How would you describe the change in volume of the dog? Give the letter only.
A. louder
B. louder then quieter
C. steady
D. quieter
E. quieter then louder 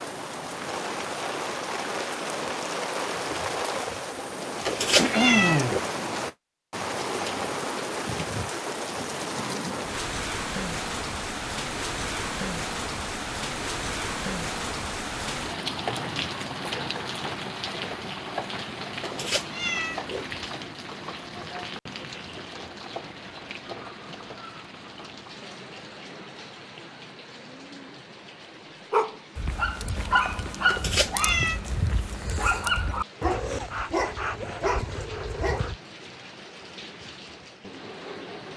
C.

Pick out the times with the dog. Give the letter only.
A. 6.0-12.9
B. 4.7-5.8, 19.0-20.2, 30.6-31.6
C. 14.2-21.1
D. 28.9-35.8
D.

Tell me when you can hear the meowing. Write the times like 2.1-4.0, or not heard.
4.7-5.8, 19.0-20.2, 30.6-31.6.